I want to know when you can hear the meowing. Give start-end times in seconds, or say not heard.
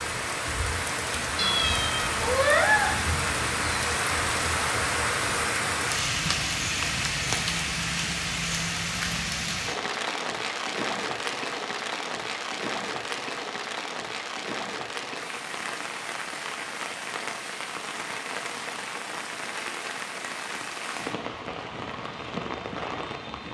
1.4-2.9.